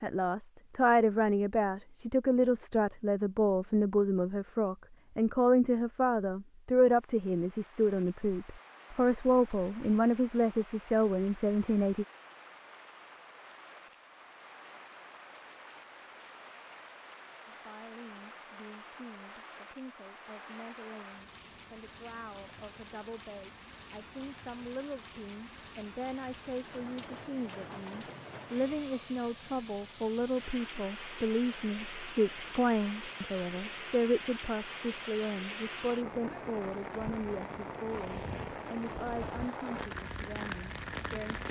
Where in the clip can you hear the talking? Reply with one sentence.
The talking can be heard from 0.0 to 12.1 s and from 17.4 to 41.4 s.